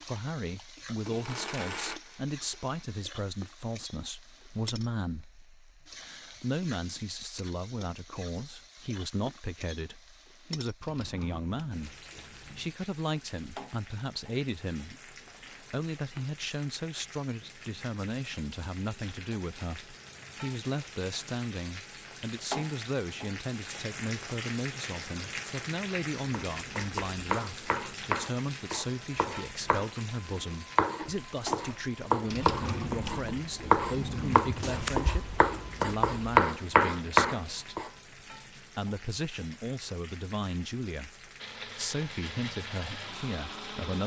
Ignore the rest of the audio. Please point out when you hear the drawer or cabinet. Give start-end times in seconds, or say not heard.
10.8-12.8, 15.2-16.3, 32.2-35.0.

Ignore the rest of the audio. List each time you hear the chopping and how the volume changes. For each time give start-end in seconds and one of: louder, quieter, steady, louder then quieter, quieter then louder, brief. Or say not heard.
26.3-37.9 louder.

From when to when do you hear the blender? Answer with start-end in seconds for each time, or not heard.
0.0-2.9, 41.4-44.0.